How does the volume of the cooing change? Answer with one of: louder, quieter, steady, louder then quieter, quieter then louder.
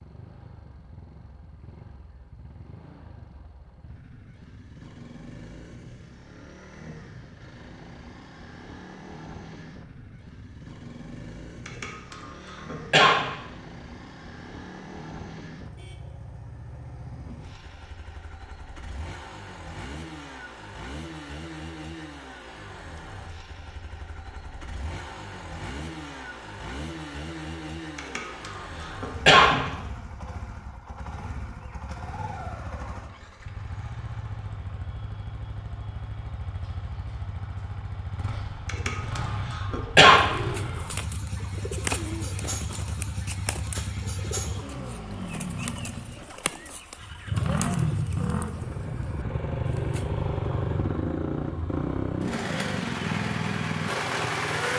quieter.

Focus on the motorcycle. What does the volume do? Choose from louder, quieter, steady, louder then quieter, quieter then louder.
louder.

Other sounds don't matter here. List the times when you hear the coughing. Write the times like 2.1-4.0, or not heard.
11.7-13.2, 27.9-29.6, 38.6-40.2.